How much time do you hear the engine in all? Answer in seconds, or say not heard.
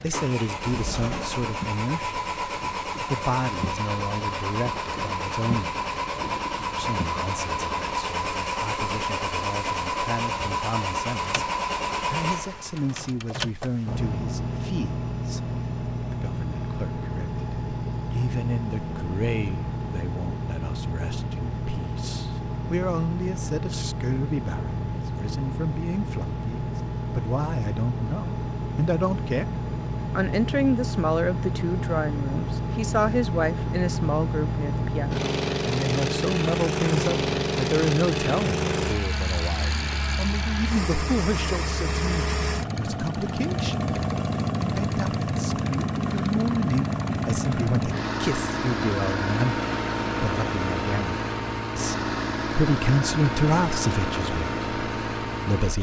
56 s.